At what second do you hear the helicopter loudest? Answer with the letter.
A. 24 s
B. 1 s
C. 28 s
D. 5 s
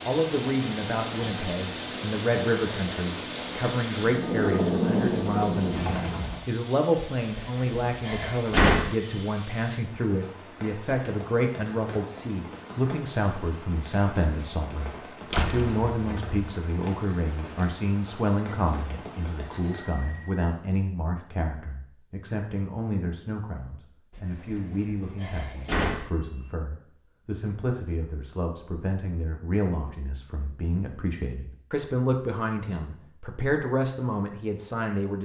D.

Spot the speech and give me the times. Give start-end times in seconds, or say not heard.
0.1-35.1.